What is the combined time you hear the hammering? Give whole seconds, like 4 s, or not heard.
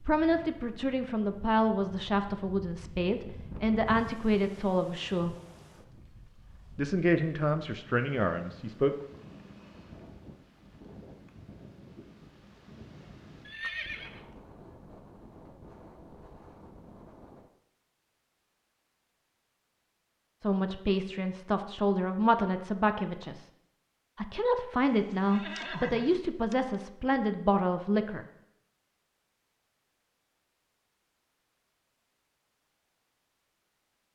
not heard.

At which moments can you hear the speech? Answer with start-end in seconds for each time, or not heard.
0.0-5.3, 6.8-8.9, 20.4-23.4, 24.1-28.2.